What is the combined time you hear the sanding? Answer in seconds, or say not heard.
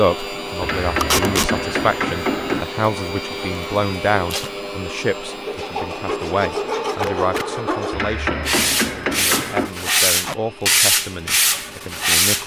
7 s.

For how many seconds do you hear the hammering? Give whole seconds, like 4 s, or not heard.
4 s.